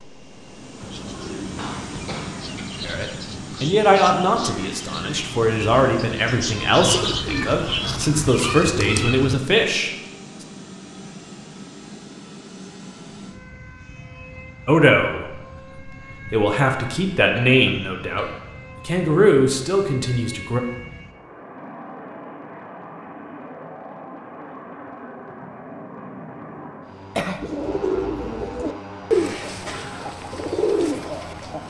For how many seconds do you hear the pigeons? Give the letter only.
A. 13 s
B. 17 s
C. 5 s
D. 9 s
A.